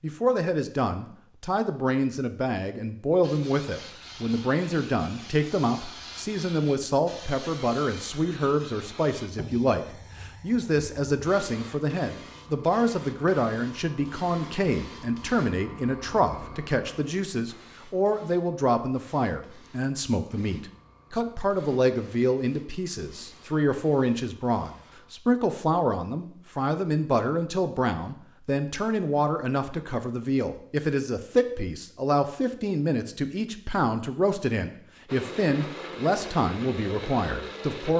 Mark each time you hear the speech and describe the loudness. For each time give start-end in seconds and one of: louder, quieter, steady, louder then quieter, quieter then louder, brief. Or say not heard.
0.0-37.9 steady.